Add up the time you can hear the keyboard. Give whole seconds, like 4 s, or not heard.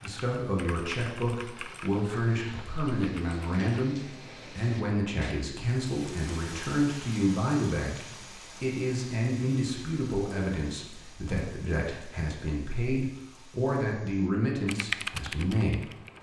5 s.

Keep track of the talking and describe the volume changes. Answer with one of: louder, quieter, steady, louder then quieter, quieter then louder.
steady.